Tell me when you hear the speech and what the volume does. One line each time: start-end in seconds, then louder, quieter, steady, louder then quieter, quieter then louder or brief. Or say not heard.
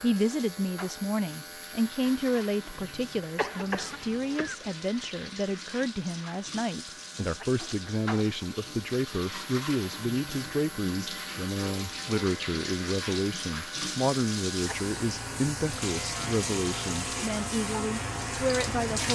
0.0-19.1 steady.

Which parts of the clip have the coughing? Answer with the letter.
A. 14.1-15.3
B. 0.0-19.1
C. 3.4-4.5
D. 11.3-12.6
C.